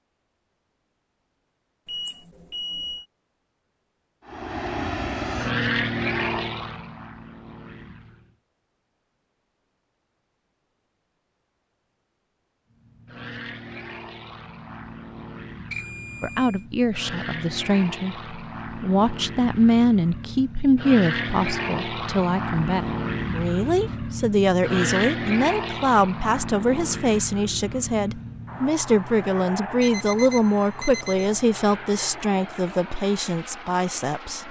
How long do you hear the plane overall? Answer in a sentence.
The plane can be heard for 26 seconds in total.